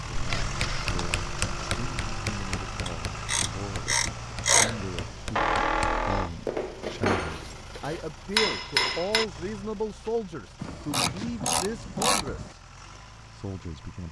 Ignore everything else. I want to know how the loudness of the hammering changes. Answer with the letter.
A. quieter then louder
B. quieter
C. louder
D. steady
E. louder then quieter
A.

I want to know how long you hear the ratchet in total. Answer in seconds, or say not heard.
4 s.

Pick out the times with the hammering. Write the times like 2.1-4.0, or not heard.
0.1-9.2.